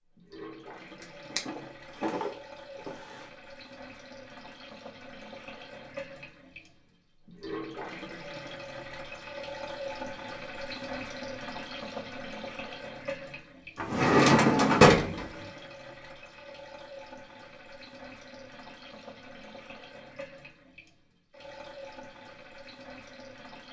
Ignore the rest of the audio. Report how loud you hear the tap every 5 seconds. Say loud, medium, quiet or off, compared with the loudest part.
medium, loud, loud, medium, medium.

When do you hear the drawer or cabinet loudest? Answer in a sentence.
The volume of the drawer or cabinet peaks at 15 seconds.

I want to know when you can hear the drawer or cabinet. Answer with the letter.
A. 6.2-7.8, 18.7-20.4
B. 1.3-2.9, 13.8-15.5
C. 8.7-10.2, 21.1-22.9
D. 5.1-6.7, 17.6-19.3
B.